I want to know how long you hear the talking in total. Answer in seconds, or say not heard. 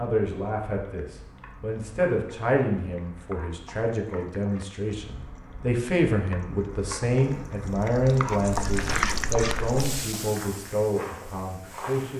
12 s.